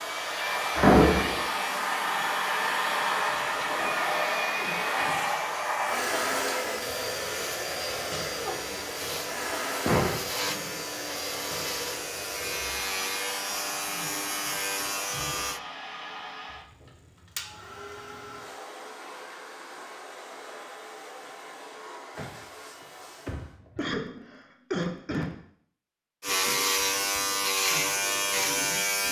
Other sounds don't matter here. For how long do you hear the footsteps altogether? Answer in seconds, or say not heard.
not heard.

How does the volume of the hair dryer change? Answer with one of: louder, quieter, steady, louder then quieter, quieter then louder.
quieter.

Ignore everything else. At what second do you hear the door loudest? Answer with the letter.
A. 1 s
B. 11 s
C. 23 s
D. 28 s
A.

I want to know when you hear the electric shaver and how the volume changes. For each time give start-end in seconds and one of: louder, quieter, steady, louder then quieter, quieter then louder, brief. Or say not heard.
0.0-15.6 louder
26.2-29.0 brief.